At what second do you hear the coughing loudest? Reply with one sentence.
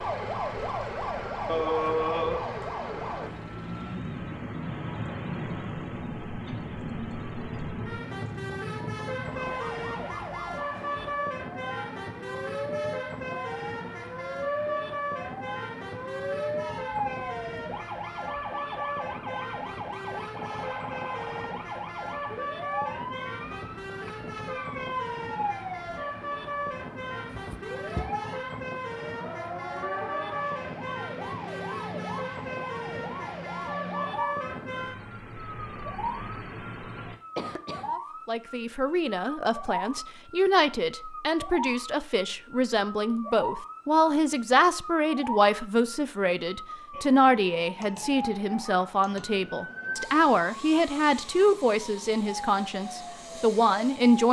The volume of the coughing peaks at 2 seconds.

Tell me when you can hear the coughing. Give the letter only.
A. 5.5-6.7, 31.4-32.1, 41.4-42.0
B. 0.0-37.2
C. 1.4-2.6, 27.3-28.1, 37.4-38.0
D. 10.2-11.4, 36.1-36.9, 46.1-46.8
C.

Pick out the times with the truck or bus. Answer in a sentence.
The truck or bus can be heard from 0.0 to 37.2 s.